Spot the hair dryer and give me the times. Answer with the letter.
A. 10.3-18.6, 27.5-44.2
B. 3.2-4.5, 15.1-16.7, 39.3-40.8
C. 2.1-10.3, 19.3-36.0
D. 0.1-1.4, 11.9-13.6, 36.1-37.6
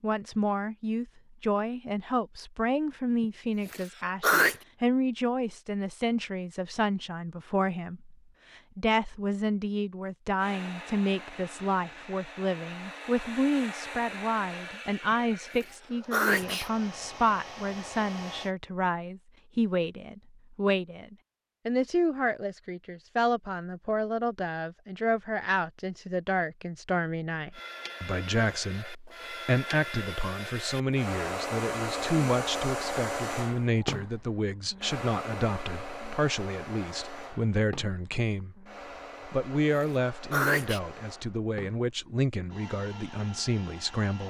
A.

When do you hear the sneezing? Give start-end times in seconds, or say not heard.
3.2-4.5, 15.1-16.7, 39.3-40.8.